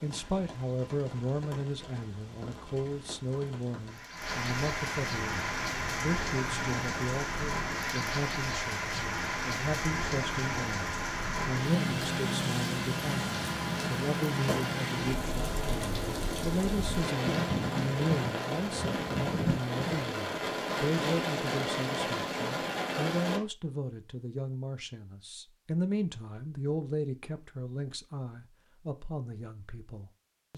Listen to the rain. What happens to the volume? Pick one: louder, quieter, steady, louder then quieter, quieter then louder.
louder.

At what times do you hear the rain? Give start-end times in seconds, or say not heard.
0.0-23.4.